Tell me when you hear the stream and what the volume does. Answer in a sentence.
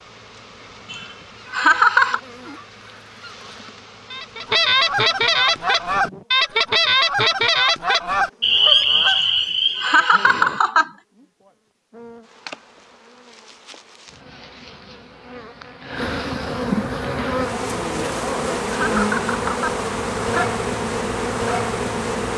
The stream can't be heard in this clip.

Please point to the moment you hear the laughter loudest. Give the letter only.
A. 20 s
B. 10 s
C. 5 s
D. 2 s
D.